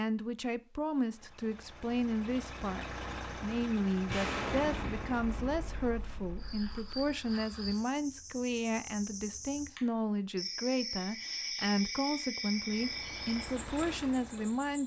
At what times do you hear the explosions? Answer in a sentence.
You can hear the explosions from 4.0 to 7.1 s.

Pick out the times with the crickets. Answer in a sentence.
The crickets can be heard from 6.3 to 14.8 s.